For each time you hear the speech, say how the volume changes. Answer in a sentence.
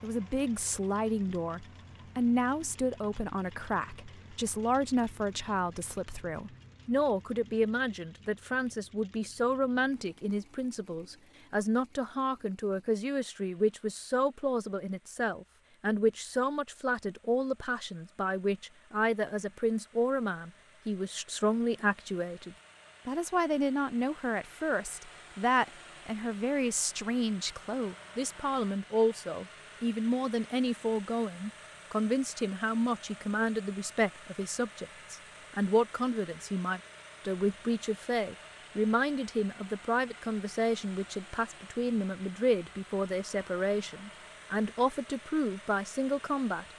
The speech can be heard from 0.0 to 46.6 s, at a steady volume.